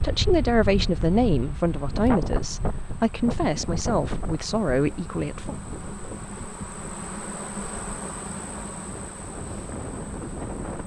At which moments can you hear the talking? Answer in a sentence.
The talking can be heard from 0.0 to 5.5 s.